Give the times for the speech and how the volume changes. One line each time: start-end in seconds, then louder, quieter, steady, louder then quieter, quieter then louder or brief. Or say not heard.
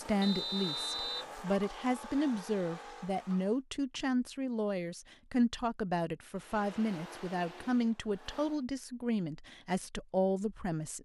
0.0-10.9 steady.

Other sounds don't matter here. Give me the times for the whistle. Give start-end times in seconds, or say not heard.
0.2-1.3.